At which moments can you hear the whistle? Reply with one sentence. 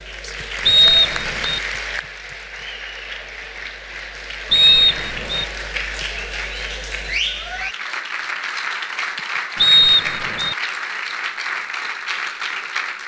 The whistle can be heard from 0.7 to 1.6 s, from 4.5 to 5.5 s and from 9.6 to 10.6 s.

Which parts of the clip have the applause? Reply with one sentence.
You can hear the applause from 0.0 to 13.0 s.